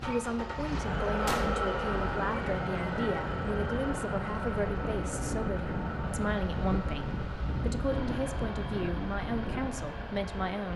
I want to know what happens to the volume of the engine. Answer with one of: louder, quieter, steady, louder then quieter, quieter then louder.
quieter.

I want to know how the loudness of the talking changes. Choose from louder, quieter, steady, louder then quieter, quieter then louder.
steady.